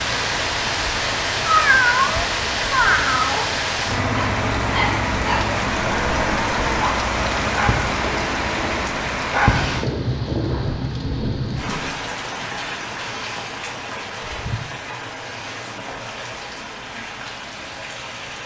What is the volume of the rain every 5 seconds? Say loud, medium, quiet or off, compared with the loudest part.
loud, loud, medium, medium.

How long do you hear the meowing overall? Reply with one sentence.
You can hear the meowing for 2 seconds altogether.